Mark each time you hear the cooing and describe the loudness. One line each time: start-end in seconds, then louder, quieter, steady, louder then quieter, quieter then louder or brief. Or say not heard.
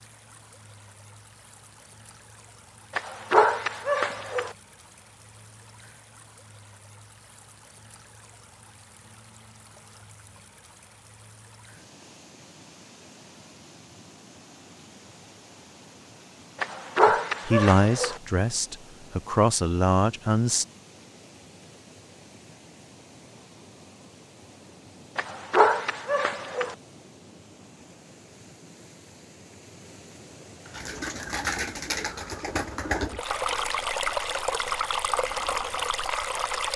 30.6-36.0 quieter.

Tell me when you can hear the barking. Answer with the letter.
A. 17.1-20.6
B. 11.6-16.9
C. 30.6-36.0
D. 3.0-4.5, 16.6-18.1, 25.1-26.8
D.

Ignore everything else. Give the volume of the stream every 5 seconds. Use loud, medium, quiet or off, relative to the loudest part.
quiet, quiet, quiet, quiet, quiet, quiet, loud, loud.